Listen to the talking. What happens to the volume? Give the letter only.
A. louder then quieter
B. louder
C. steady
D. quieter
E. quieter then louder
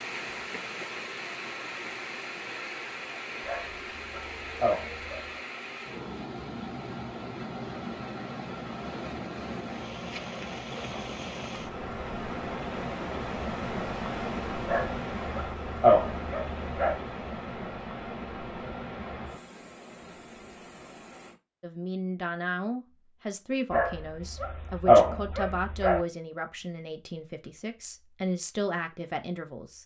E.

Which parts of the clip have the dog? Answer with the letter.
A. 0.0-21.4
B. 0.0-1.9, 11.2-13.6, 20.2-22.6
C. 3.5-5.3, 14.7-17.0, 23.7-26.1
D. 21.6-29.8
C.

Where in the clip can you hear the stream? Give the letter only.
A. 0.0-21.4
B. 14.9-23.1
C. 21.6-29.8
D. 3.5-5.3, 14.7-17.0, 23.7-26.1
A.